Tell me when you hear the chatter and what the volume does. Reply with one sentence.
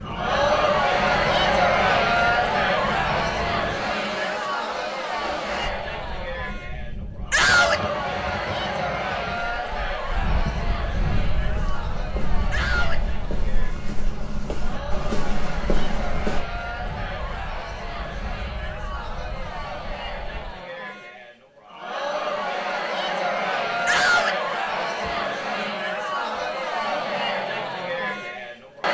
You can hear the chatter from 0.0 to 28.9 s, getting quieter then louder.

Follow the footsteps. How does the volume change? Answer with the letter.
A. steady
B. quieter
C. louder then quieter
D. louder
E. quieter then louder
D.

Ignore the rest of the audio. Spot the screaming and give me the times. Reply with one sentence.
The screaming can be heard from 7.3 to 7.8 s, from 12.5 to 13.0 s and from 23.9 to 24.4 s.